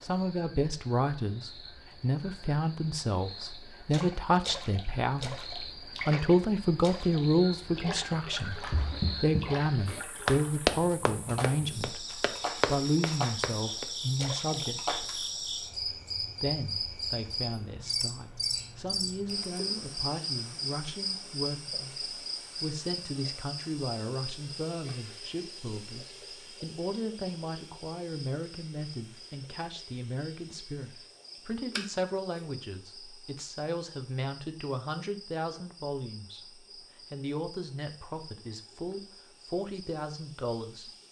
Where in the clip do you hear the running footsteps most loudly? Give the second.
11 s.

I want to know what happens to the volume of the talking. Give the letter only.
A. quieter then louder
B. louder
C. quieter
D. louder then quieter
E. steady
C.